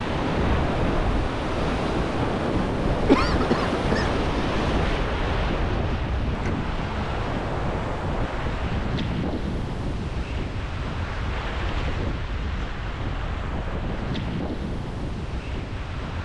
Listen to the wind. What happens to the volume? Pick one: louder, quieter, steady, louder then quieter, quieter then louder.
quieter.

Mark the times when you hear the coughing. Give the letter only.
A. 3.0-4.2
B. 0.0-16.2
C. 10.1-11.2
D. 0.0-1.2
A.